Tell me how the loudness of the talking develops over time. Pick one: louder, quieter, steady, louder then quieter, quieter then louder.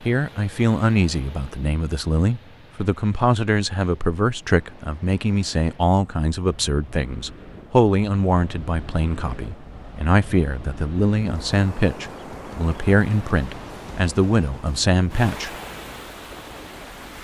steady.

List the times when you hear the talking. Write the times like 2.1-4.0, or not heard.
0.0-15.5.